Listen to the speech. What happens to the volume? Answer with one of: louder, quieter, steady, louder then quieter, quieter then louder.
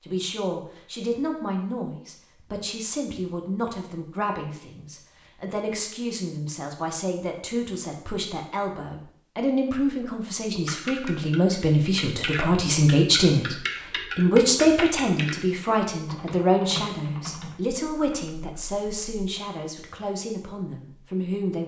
louder then quieter.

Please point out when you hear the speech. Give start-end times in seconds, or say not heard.
0.1-21.6.